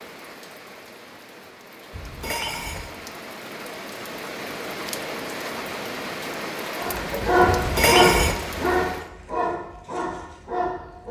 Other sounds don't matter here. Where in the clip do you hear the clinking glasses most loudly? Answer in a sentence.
The volume of the clinking glasses peaks at 8 seconds.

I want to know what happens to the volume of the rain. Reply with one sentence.
The volume of the rain goes up.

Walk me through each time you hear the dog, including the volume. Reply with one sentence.
The dog can be heard from 6.8 to 11.0 s, getting quieter.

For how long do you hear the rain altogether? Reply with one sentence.
The rain can be heard for 9 seconds in total.